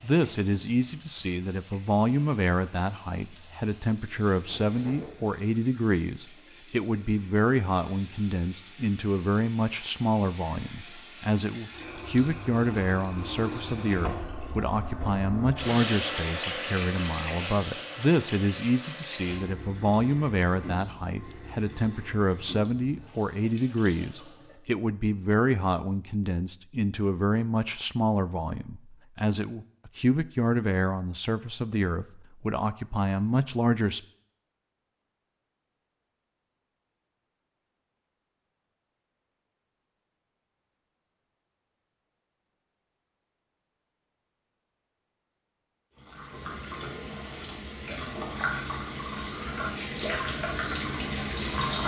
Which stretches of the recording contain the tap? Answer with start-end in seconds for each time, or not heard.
0.0-24.7, 46.0-51.8.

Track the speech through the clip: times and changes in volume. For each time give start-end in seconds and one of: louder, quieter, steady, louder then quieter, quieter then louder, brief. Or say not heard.
0.0-34.0 steady.